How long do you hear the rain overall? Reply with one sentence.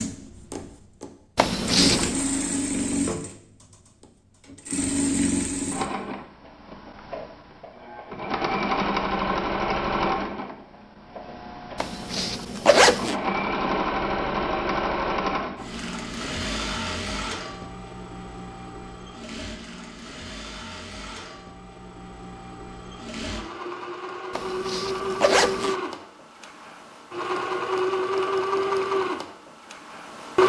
The rain can't be heard in this clip.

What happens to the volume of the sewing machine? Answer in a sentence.
The loudness of the sewing machine goes down, then up.